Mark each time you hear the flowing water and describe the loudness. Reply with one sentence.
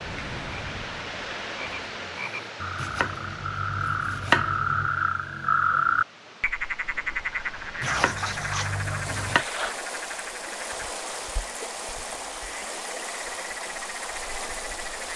The flowing water can be heard from 0.0 to 15.1 s, getting quieter then louder.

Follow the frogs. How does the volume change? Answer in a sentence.
The volume of the frogs goes up, then down.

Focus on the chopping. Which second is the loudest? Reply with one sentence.
The loudest moment of the chopping is at 4 seconds.